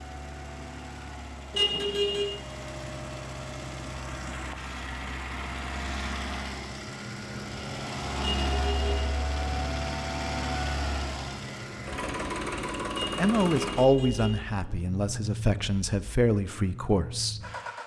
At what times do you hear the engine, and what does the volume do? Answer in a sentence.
You can hear the engine from 0.0 to 17.8 s, getting louder then quieter.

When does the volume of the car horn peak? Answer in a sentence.
The volume of the car horn peaks at 2 seconds.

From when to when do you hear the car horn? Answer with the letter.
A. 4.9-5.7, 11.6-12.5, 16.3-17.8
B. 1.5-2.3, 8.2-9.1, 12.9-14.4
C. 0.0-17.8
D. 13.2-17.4
B.